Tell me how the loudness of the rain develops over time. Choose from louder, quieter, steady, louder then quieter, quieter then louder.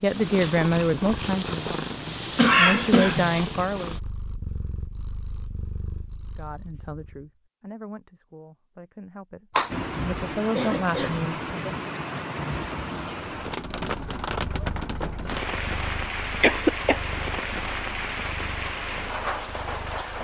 steady.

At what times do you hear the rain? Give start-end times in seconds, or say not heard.
9.7-20.2.